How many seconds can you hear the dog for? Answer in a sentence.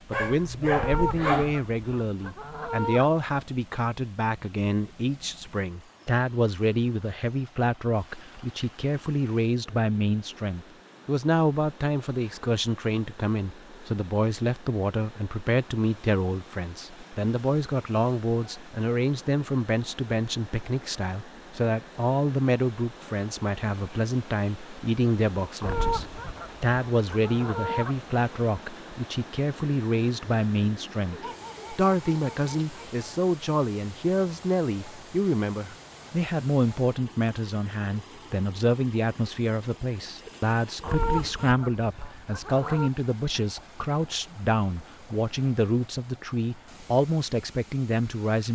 The dog can be heard for 3 seconds in total.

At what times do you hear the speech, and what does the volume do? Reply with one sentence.
You can hear the speech from 0.1 to 48.4 s, at a steady volume.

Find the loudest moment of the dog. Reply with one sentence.
The volume of the dog peaks at 1 second.